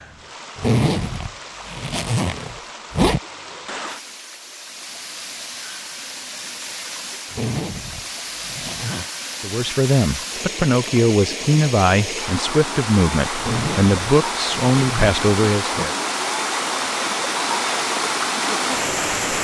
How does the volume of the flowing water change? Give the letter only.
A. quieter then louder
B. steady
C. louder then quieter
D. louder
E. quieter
D.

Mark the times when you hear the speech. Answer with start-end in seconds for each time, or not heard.
9.4-15.9.